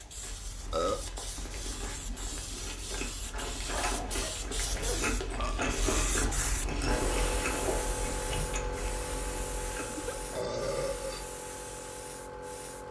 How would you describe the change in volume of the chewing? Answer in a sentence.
The loudness of the chewing goes up, then down.